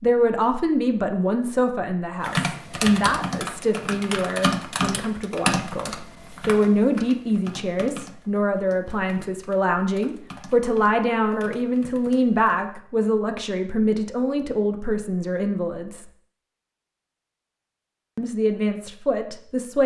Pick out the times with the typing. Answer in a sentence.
You can hear the typing from 2.2 to 12.7 s.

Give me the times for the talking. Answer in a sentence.
You can hear the talking from 0.0 to 16.1 s and from 18.1 to 19.8 s.